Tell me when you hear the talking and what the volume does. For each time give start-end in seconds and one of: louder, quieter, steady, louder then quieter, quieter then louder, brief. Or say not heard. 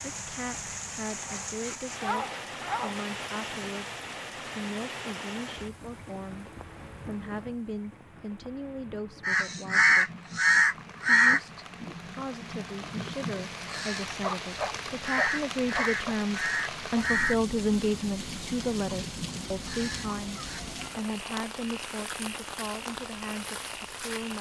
0.1-10.2 steady
11.1-24.3 louder then quieter.